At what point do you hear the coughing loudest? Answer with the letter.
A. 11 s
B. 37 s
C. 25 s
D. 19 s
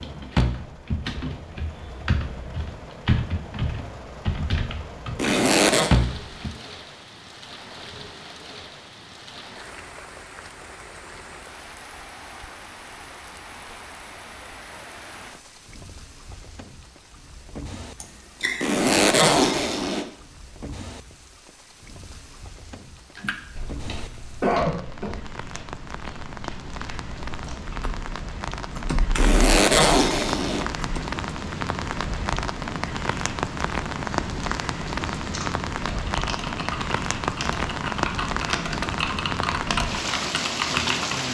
C.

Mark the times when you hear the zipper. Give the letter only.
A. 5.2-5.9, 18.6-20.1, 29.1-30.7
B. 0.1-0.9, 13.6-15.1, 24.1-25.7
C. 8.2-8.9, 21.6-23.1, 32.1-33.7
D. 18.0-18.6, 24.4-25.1
A.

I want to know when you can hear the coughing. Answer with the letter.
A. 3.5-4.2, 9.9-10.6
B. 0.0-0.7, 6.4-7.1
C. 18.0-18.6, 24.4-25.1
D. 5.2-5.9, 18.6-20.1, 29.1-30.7
C.